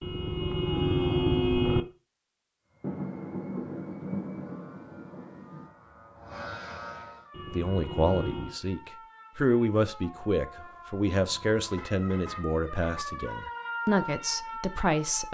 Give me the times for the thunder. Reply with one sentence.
The thunder can be heard from 2.8 to 5.7 s.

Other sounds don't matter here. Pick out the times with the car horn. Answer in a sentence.
The car horn can be heard from 0.0 to 1.9 s, from 7.3 to 8.6 s and from 11.2 to 13.1 s.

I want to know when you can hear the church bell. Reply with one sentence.
You can't hear the church bell here.